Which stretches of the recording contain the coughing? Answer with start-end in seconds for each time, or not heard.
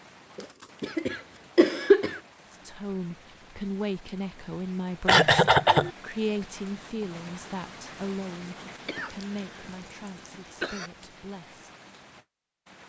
0.3-2.2, 5.0-5.9, 8.8-10.9.